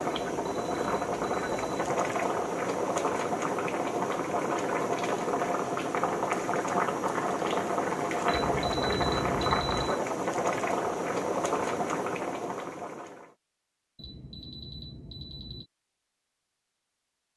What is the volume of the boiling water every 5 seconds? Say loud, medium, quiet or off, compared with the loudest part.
loud, loud, loud, off.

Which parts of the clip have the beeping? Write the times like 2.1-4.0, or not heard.
0.1-1.7, 8.2-10.0, 13.9-15.7.